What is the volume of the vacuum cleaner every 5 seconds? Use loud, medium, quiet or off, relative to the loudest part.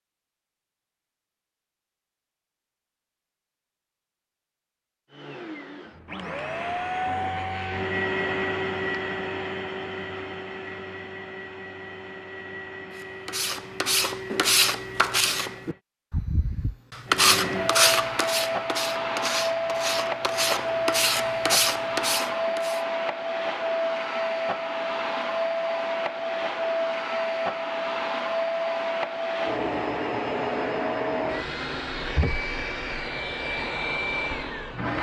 off, loud, medium, loud, loud, loud, loud.